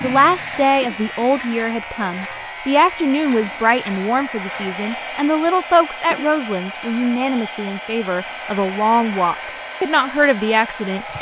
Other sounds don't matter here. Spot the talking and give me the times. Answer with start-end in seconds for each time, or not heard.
0.0-11.1.